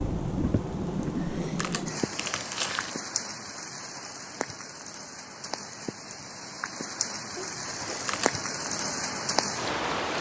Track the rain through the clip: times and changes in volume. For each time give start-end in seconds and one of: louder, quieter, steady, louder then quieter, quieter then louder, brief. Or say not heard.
0.0-10.1 quieter then louder.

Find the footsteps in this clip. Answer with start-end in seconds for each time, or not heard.
not heard.